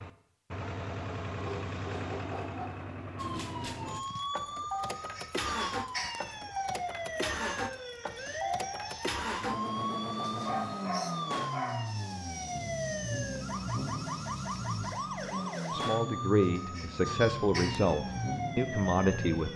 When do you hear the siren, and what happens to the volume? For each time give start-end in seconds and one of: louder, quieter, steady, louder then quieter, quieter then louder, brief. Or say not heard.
3.1-19.5 steady.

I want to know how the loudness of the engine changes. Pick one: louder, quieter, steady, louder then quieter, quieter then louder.
steady.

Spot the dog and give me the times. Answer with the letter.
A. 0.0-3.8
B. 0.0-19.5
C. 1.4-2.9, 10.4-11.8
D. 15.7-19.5
C.